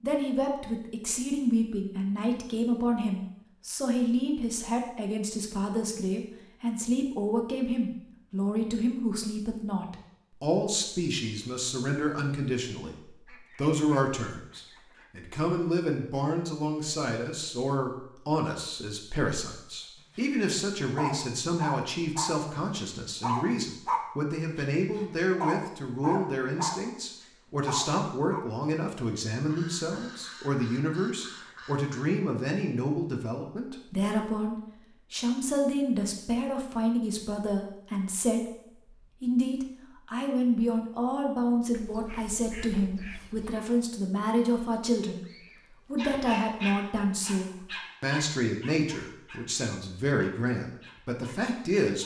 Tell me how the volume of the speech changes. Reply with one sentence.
The loudness of the speech stays about the same.